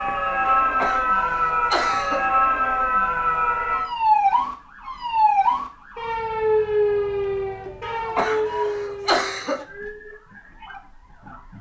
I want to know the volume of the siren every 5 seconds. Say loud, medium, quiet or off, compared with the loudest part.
loud, loud, quiet.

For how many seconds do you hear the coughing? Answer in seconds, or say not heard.
4 s.